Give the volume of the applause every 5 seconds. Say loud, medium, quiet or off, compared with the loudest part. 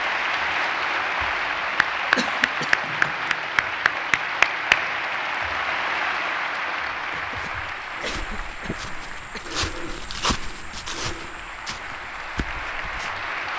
loud, medium, medium.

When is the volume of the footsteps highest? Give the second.
10 s.